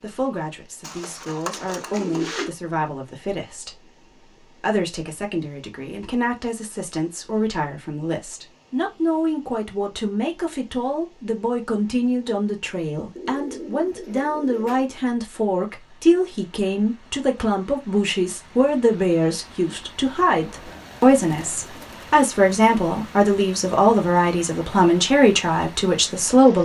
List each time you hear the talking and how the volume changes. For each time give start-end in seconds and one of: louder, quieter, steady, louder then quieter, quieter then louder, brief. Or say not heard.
0.0-26.6 louder.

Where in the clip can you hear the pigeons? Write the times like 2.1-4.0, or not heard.
0.8-2.5, 13.2-14.9, 20.6-22.1.